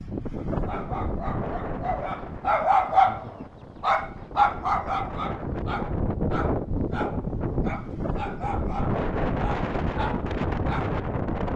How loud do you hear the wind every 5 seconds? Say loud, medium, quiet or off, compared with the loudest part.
medium, loud, loud.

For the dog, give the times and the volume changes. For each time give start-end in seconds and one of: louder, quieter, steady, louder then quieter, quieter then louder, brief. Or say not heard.
0.3-10.9 louder then quieter.